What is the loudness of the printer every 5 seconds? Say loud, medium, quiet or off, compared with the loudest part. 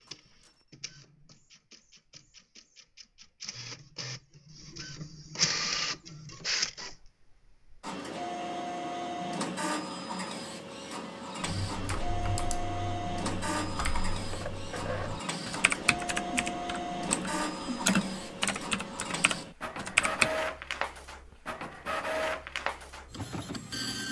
quiet, loud, loud, loud, loud.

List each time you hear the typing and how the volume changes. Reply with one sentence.
You can hear the typing from 11.4 to 20.3 s, getting louder.